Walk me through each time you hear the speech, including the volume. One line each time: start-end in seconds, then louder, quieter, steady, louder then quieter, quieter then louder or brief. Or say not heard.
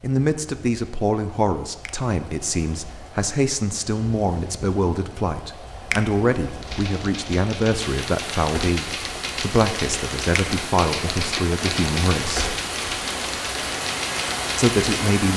0.0-12.6 steady
14.6-15.3 brief.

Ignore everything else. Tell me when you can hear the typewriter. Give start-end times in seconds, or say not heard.
6.6-15.1.